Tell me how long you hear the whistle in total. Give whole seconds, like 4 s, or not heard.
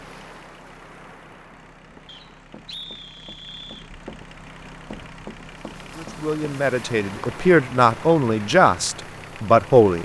2 s.